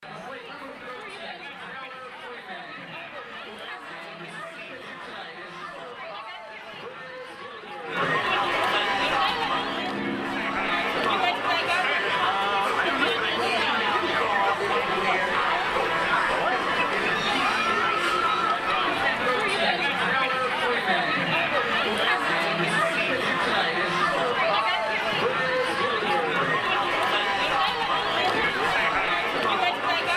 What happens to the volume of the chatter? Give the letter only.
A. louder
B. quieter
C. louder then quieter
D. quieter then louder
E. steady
A.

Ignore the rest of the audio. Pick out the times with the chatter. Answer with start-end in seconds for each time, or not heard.
0.0-30.1.